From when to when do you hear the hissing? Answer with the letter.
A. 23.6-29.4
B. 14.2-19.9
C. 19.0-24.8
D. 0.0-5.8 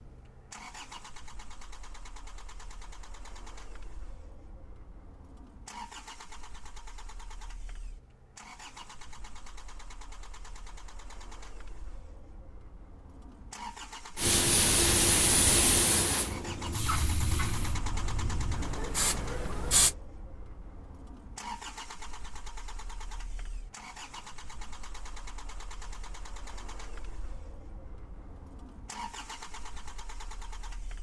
B.